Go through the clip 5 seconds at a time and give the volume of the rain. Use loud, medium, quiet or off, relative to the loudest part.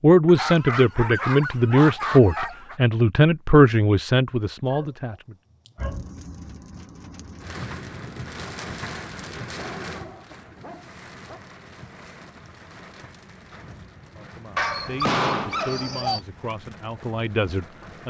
off, loud, medium, medium.